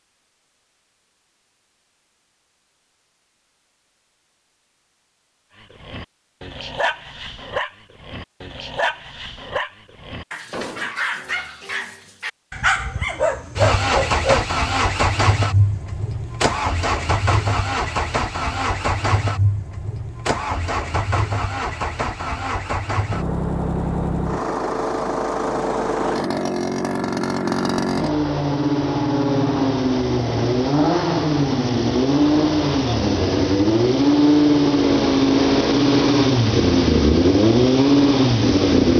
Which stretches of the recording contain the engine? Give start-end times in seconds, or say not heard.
13.6-38.9.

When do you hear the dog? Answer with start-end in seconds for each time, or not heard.
5.6-14.4.